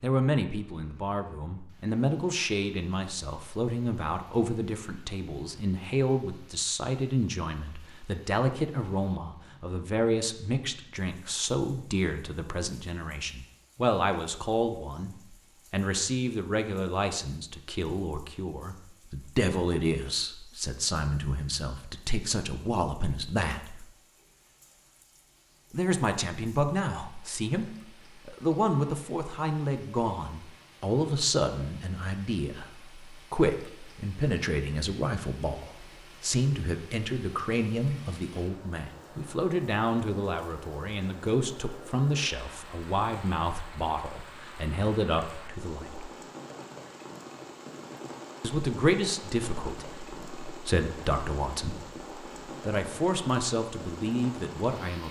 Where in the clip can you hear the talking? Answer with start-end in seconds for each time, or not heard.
0.0-23.9, 25.7-46.1, 48.4-55.0.